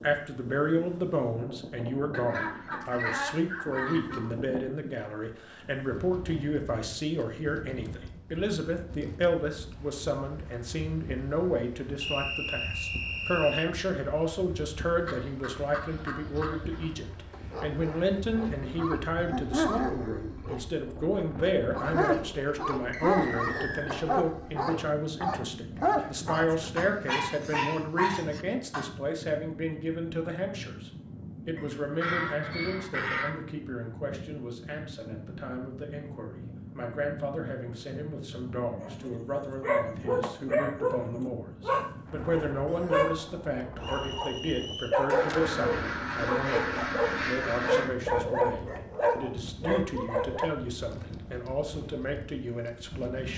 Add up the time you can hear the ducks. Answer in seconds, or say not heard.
9 s.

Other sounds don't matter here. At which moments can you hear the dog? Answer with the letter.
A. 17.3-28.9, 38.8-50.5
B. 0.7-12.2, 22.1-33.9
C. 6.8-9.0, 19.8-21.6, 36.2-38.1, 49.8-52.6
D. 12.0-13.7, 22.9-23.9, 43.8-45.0
A.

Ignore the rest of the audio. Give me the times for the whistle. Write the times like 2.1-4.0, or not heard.
12.0-13.7, 22.9-23.9, 43.8-45.0.